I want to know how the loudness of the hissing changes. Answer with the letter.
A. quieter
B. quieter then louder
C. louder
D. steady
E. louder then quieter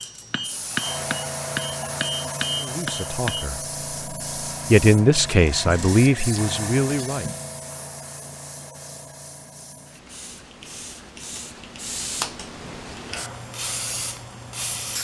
B.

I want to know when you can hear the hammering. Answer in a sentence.
You can hear the hammering from 0.0 to 3.5 s.